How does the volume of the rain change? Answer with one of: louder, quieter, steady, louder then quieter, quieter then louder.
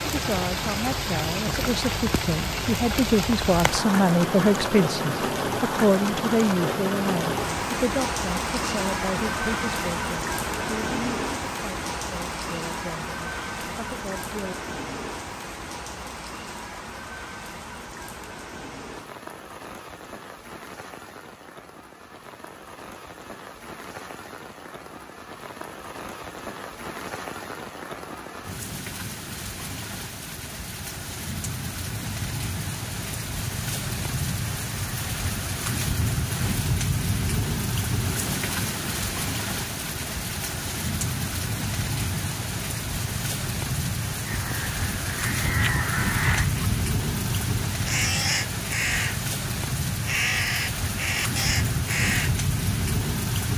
quieter then louder.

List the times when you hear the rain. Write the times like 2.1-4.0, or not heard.
0.0-53.5.